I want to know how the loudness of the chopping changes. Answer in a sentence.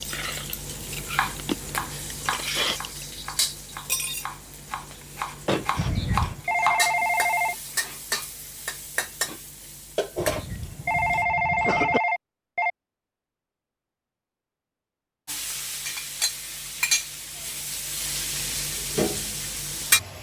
The loudness of the chopping goes down, then up.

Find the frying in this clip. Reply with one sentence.
You can hear the frying from 0.0 to 11.2 s and from 15.2 to 20.1 s.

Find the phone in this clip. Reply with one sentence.
The phone can be heard from 6.5 to 7.5 s and from 10.8 to 12.7 s.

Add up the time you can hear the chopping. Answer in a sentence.
The chopping can be heard for 6 seconds in total.